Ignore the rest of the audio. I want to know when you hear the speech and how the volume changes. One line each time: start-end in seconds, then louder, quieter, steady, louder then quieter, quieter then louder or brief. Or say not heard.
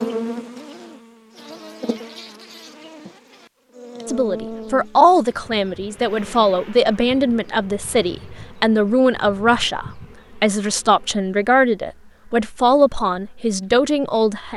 4.0-14.5 steady.